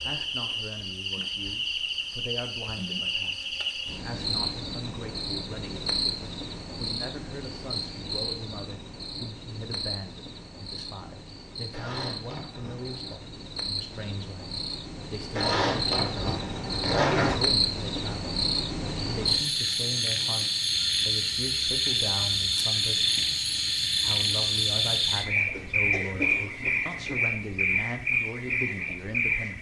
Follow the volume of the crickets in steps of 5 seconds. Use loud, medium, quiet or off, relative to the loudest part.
medium, medium, quiet, loud, loud, loud.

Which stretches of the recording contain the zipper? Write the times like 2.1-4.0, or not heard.
11.7-13.3, 15.3-17.4.